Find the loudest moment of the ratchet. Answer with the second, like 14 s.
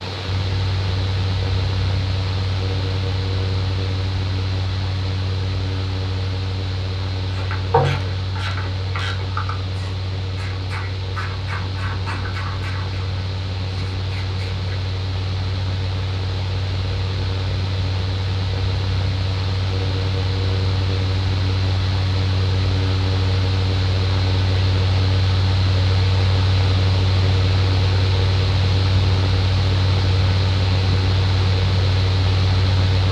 8 s.